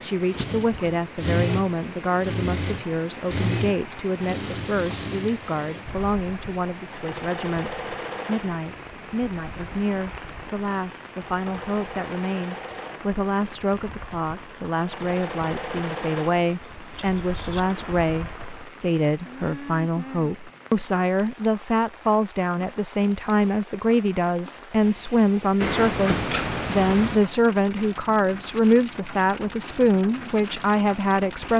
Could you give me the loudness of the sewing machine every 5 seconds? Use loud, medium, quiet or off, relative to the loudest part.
loud, medium, medium, medium, off, off, off.